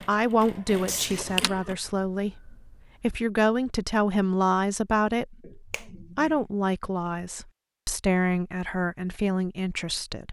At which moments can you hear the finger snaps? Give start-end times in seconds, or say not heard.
1.1-3.0, 5.4-6.5.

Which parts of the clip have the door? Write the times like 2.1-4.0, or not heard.
0.8-1.5.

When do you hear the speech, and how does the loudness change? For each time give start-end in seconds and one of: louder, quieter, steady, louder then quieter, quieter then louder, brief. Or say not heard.
0.0-10.2 steady.